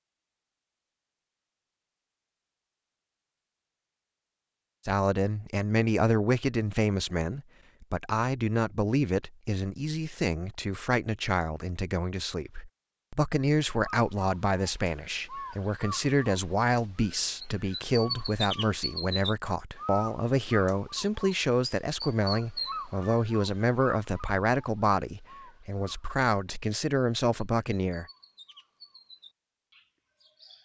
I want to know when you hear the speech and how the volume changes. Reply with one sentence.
The speech can be heard from 4.8 to 28.1 s, at a steady volume.